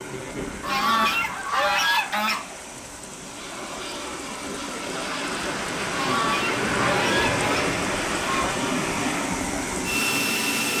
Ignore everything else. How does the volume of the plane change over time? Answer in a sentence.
The volume of the plane goes up.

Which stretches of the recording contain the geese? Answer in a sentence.
You can hear the geese from 0.6 to 2.5 s and from 5.9 to 8.6 s.